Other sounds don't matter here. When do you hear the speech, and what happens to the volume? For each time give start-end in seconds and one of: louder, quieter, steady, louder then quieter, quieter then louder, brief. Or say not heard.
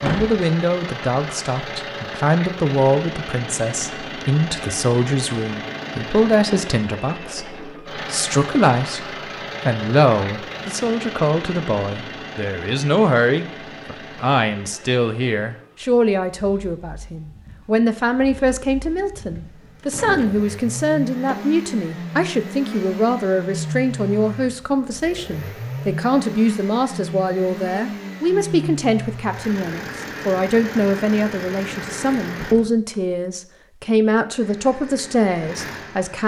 0.0-36.2 steady.